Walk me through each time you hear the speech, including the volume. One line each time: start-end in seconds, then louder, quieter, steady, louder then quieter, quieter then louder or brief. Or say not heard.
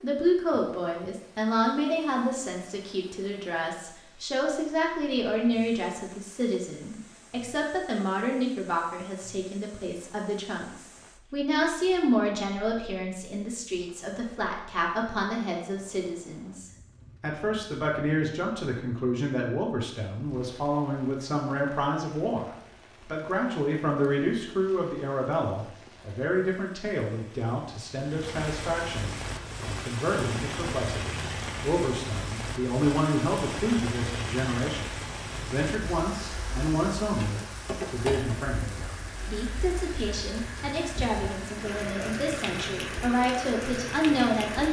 0.0-44.6 steady.